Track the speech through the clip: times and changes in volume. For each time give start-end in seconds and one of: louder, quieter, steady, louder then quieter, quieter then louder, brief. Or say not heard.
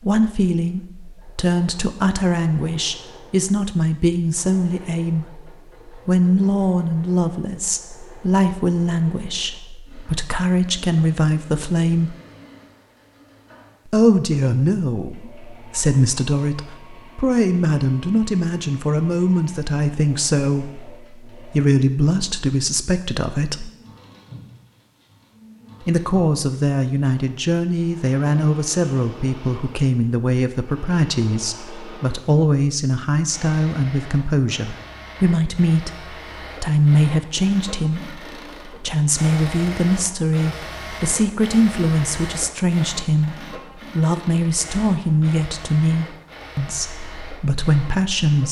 0.0-12.2 steady
13.8-23.7 steady
25.8-48.4 steady.